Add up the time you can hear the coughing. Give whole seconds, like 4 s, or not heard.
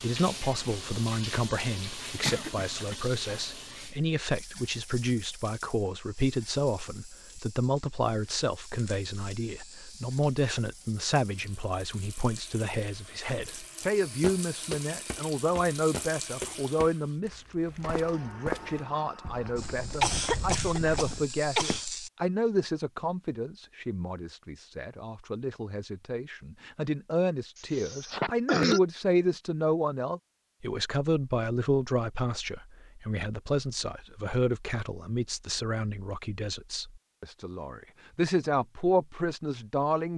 4 s.